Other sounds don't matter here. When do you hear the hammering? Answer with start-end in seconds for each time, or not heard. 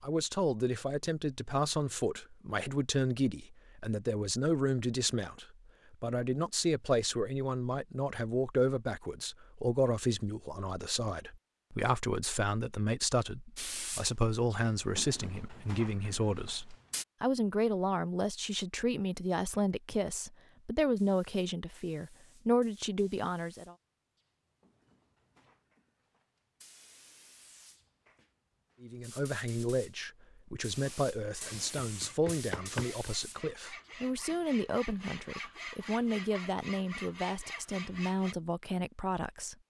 31.6-33.0.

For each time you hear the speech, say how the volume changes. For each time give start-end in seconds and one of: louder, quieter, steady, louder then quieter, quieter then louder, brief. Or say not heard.
0.0-23.8 steady
28.8-39.5 steady.